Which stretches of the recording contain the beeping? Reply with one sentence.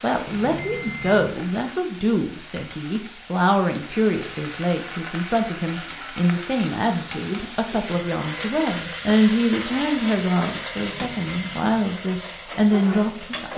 The beeping can be heard from 0.2 to 1.4 s and from 10.8 to 11.9 s.